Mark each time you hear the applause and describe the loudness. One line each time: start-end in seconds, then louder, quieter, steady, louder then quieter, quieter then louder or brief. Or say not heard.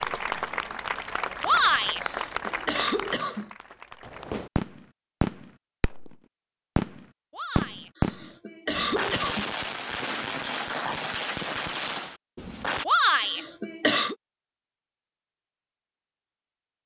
0.0-4.5 quieter.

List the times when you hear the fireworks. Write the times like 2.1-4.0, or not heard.
4.0-6.2, 6.8-12.8.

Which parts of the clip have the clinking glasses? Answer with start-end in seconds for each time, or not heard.
not heard.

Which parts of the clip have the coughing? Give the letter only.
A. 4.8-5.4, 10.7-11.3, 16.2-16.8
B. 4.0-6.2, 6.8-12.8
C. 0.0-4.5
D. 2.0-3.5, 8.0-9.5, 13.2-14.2
D.